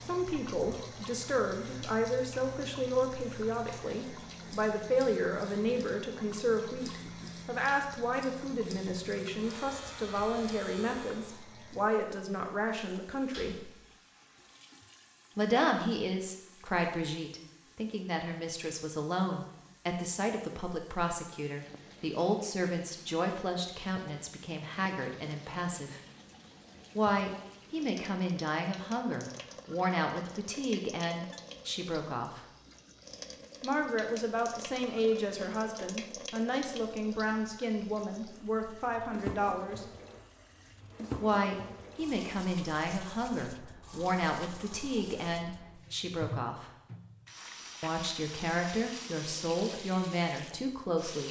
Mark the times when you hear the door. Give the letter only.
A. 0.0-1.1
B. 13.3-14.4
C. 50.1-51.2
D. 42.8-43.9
B.